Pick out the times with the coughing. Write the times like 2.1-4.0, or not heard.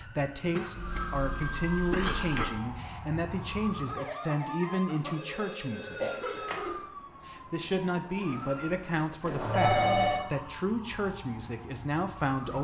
0.5-2.5, 4.8-6.8, 8.9-9.9.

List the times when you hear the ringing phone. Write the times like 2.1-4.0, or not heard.
0.8-2.6, 5.1-6.6, 9.2-10.2.